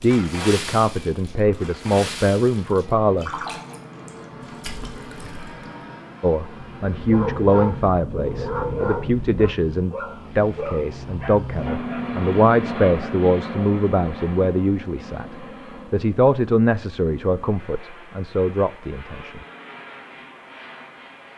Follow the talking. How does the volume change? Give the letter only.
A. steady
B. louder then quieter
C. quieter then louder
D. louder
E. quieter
A.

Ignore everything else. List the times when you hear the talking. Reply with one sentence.
The talking can be heard from 0.0 to 3.4 s and from 6.2 to 19.4 s.